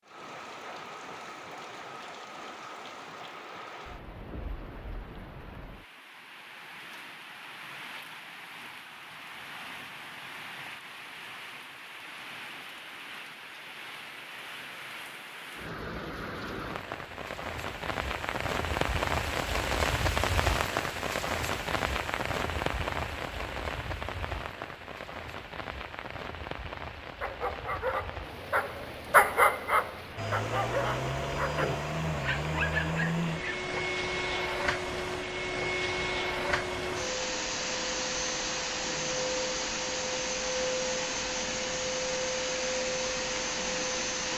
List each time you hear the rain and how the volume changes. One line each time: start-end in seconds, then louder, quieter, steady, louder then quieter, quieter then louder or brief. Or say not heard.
0.0-44.3 louder then quieter.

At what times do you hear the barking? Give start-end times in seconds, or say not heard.
27.2-33.8.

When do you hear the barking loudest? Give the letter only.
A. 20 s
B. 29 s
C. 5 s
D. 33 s
B.